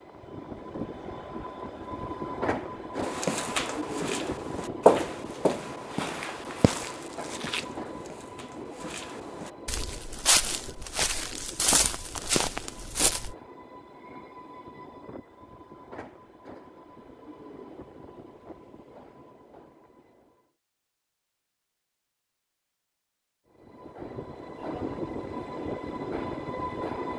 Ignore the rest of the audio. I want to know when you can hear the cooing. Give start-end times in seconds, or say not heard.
not heard.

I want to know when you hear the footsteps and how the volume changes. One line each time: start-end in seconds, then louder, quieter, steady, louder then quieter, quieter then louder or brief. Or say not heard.
3.0-13.3 quieter then louder.